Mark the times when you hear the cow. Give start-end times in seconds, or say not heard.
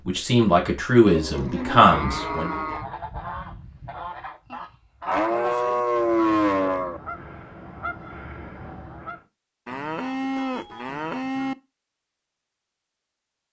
1.1-2.9, 5.0-7.0, 9.7-11.6.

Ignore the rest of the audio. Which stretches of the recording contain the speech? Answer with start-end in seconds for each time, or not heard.
0.1-2.6.